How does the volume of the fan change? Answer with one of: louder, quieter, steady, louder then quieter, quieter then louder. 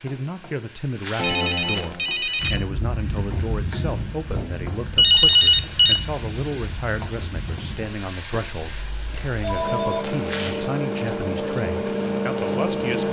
quieter then louder.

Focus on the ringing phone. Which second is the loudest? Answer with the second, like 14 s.
5 s.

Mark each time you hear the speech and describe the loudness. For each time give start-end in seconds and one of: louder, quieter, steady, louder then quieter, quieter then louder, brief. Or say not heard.
0.0-13.0 steady.